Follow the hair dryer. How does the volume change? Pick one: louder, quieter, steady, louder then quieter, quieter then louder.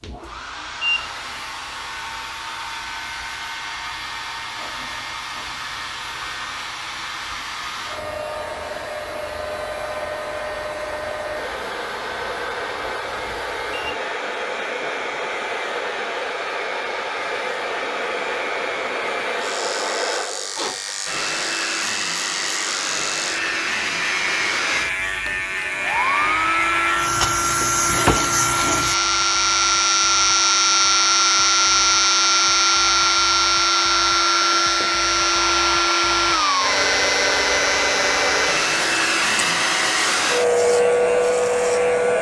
louder.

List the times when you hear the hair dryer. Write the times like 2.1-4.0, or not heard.
0.0-42.1.